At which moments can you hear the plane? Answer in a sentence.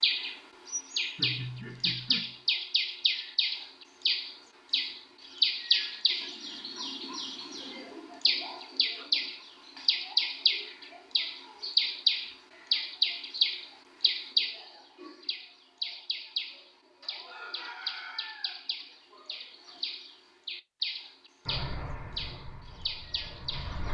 The plane can be heard from 21.4 to 23.8 s.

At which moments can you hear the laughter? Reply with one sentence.
The laughter can be heard from 1.1 to 2.4 s.